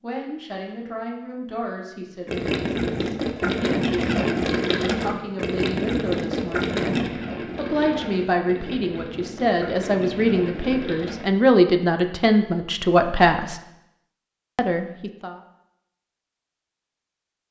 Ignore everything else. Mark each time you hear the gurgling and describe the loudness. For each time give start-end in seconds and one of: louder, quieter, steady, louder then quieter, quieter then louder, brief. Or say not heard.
2.2-11.3 quieter.